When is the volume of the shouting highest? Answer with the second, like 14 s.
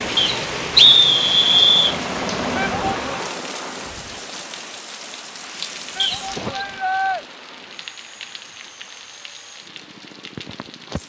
7 s.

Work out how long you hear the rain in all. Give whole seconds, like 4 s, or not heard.
11 s.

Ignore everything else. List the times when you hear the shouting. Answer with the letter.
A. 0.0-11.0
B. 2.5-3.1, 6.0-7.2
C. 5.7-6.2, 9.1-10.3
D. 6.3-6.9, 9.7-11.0
B.